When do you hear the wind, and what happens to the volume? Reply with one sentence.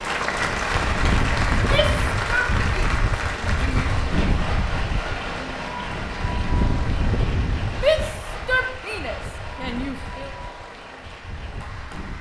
The wind can be heard from 0.0 to 12.1 s, getting quieter.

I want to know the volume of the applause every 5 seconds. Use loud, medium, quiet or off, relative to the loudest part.
loud, medium, quiet.